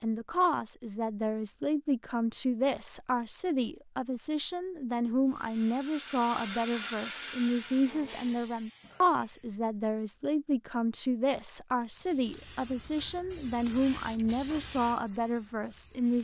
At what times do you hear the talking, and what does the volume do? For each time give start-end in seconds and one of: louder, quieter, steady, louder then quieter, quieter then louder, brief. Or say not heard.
0.0-16.2 steady.